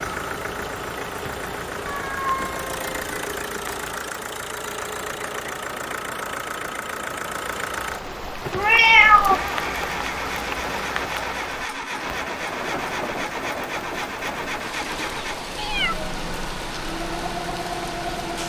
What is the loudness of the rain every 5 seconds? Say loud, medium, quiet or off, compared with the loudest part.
medium, loud, loud, loud.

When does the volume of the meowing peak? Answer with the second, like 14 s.
9 s.